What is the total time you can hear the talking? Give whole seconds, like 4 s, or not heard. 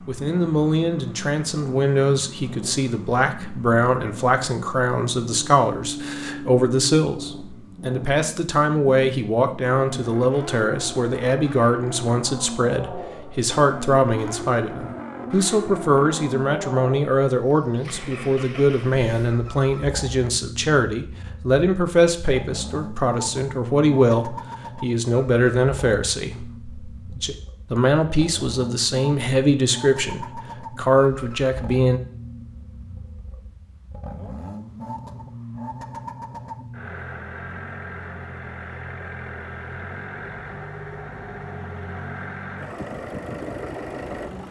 32 s.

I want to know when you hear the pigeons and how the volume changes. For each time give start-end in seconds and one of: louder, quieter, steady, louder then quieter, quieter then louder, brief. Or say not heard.
not heard.